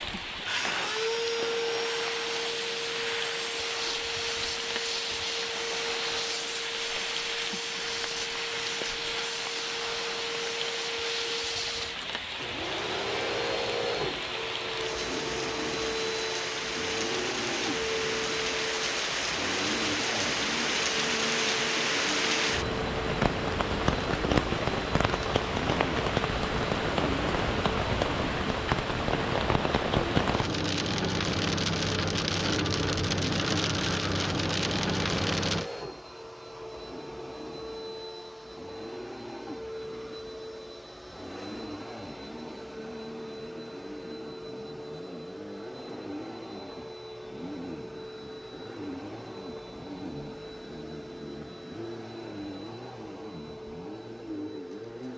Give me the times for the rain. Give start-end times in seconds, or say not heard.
0.0-35.7.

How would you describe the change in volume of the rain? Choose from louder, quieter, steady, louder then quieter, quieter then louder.
louder.